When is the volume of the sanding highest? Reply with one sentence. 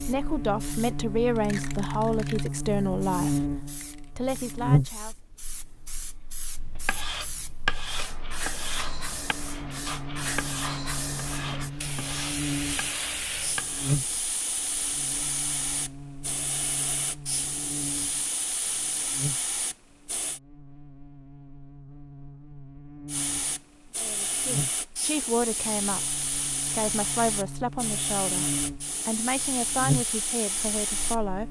The volume of the sanding peaks at 8 seconds.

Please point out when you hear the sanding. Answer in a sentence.
You can hear the sanding from 6.5 to 14.2 s.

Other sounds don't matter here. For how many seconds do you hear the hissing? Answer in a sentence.
You can hear the hissing for 29 seconds altogether.